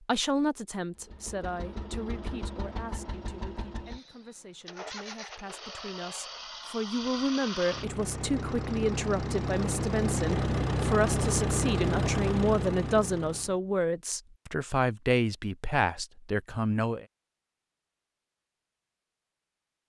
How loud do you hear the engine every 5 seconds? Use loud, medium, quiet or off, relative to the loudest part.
quiet, medium, loud, off.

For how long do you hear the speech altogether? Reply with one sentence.
You can hear the speech for 17 seconds altogether.